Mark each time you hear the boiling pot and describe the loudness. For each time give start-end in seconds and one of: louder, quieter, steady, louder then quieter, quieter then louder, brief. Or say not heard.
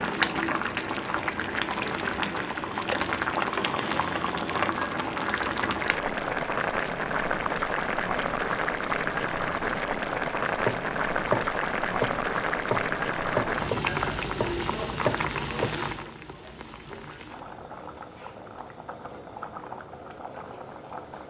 0.0-21.2 quieter.